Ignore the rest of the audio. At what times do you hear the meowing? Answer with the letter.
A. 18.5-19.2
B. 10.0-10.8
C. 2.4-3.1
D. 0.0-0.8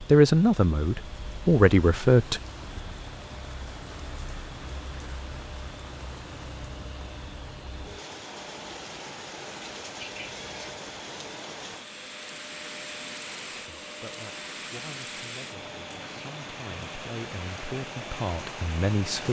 B.